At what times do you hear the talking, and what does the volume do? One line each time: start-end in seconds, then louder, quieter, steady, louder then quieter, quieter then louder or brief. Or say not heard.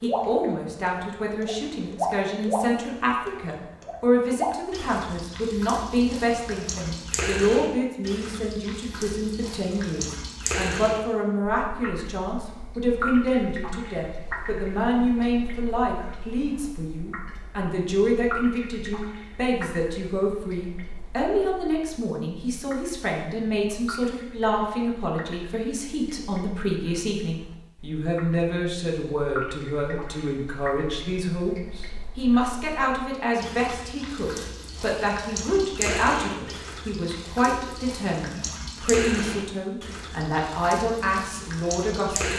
0.0-42.3 steady.